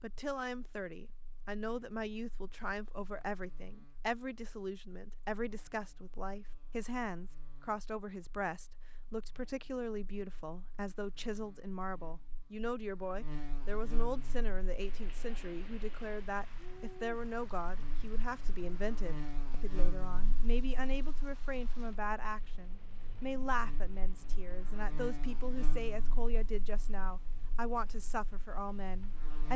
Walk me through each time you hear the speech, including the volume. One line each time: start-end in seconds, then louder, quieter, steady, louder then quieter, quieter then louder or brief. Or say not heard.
0.0-29.5 steady.